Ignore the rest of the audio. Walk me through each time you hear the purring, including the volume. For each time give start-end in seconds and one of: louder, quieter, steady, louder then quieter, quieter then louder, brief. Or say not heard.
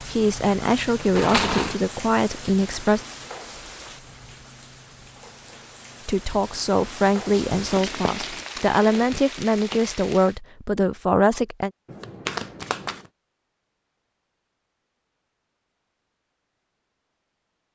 not heard.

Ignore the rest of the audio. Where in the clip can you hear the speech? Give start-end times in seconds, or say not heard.
0.1-3.0, 6.0-11.7.